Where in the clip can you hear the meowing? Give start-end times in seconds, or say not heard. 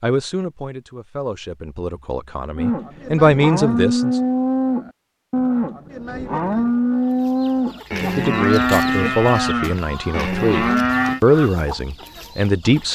not heard.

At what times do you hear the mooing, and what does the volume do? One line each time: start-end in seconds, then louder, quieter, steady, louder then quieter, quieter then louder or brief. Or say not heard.
2.5-11.2 steady.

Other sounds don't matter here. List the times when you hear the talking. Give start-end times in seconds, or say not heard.
0.0-4.2, 8.0-12.9.